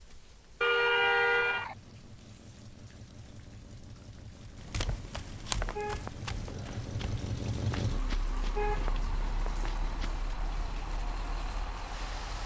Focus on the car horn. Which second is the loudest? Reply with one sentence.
The loudest moment of the car horn is at 1 second.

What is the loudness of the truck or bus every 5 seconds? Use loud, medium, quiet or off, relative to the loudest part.
quiet, loud, loud.